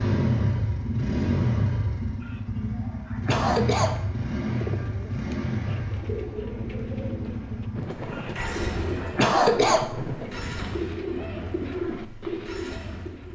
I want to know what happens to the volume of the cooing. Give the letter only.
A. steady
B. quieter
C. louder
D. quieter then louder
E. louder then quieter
C.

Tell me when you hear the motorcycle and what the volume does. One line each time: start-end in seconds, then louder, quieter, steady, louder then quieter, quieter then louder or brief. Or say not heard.
0.0-13.3 quieter.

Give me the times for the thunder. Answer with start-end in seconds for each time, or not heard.
7.8-10.8.